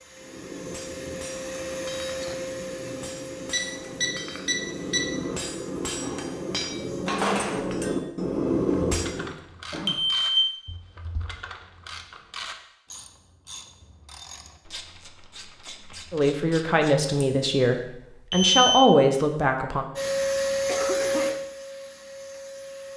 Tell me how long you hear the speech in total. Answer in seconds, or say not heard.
4 s.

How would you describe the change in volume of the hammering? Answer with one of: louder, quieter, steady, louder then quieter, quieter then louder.
louder.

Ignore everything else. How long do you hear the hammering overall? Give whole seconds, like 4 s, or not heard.
9 s.